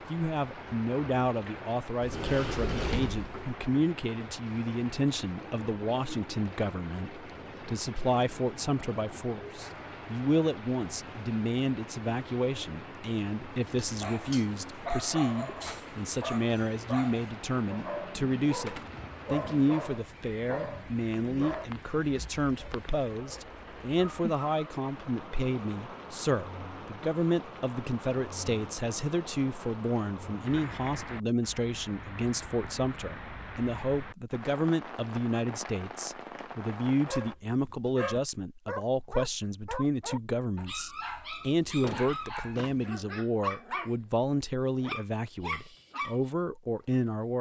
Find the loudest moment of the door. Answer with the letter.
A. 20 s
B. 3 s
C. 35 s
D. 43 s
B.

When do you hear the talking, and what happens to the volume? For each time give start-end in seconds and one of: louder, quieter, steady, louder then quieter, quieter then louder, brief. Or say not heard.
0.1-47.3 steady.